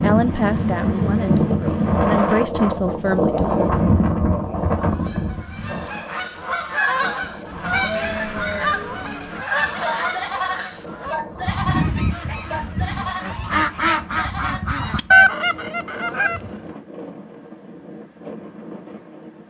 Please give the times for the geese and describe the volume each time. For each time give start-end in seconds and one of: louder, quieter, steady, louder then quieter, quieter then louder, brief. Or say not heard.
4.5-16.5 louder.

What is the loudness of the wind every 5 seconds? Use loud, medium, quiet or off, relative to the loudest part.
loud, quiet, quiet, quiet.